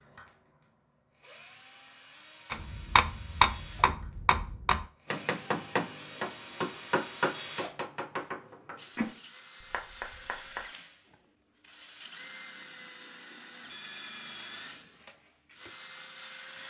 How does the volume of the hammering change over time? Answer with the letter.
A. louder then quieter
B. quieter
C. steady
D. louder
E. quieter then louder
B.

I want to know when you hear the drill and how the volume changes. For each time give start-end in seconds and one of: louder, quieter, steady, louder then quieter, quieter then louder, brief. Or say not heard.
0.0-16.6 louder.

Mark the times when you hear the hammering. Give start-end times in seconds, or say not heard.
2.5-10.7.